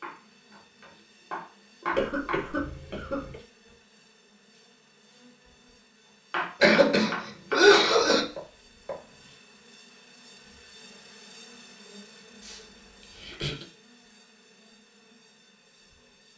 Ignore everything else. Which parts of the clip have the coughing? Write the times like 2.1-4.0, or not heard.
1.9-3.4, 6.6-8.2, 12.4-13.7.